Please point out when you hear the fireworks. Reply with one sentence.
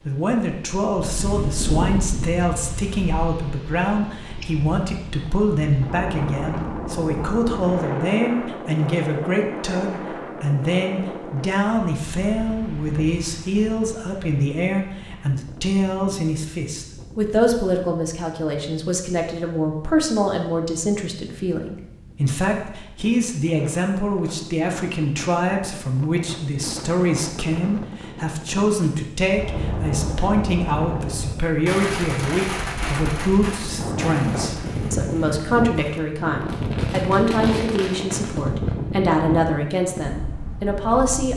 You can hear the fireworks from 28.6 to 38.5 s.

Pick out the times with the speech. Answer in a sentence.
The speech can be heard from 0.1 to 41.3 s.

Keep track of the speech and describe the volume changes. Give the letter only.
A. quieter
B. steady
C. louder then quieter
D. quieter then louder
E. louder
B.